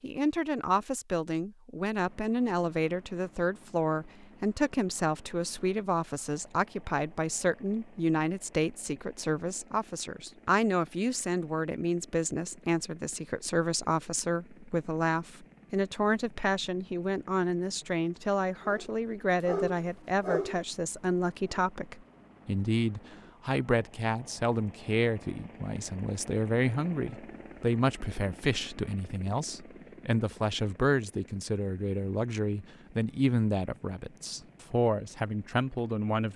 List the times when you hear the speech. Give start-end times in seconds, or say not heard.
0.0-36.3.